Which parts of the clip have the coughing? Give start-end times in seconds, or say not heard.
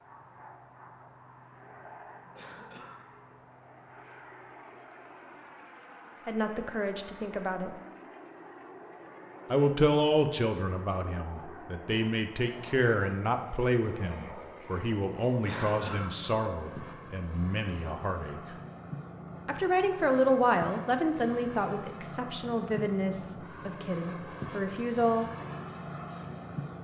2.4-3.0, 15.4-16.1.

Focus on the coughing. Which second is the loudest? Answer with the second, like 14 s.
16 s.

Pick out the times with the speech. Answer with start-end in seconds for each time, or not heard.
6.2-7.7, 9.5-18.6, 19.4-25.5.